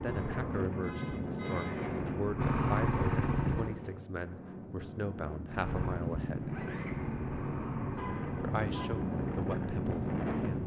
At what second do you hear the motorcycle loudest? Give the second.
3 s.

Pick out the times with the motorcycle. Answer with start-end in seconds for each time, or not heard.
0.0-3.8, 5.5-10.6.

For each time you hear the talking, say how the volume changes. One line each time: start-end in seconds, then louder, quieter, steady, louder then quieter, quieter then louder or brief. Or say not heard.
0.0-6.7 steady
8.4-10.6 brief.